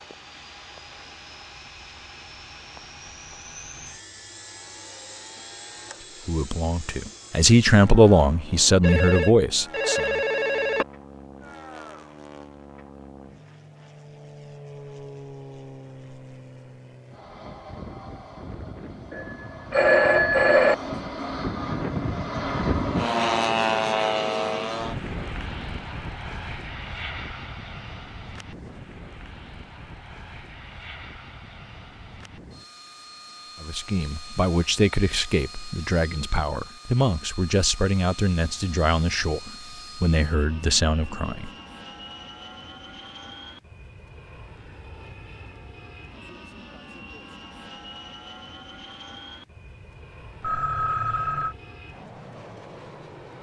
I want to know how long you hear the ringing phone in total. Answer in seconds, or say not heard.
5 s.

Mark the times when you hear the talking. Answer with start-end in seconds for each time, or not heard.
6.2-10.2, 33.6-41.5.